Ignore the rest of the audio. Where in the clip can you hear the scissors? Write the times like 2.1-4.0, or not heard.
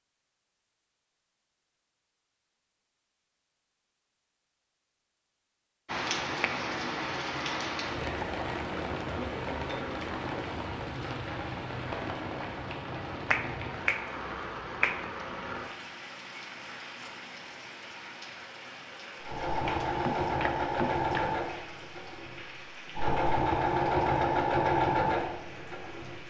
not heard.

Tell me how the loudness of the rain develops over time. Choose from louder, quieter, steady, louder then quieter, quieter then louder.
quieter.